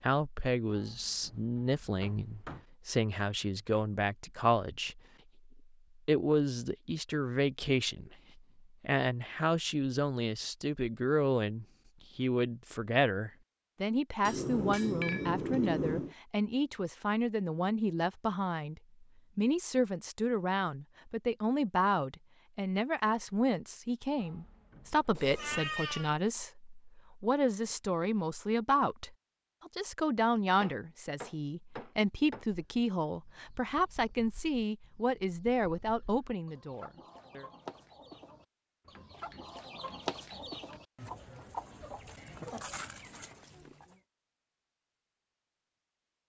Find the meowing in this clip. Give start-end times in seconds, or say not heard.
25.1-26.1.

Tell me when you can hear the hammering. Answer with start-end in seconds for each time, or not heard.
0.7-2.6, 14.2-16.1, 24.1-25.8, 30.6-32.5, 38.9-40.8.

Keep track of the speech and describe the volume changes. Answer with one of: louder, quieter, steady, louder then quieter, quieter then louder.
steady.